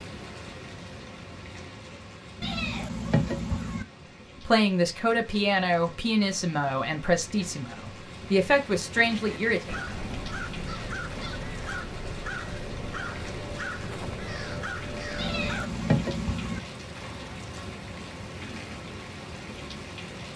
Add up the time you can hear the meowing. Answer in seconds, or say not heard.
3 s.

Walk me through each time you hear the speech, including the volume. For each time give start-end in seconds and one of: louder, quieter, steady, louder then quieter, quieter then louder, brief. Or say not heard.
4.5-9.8 steady.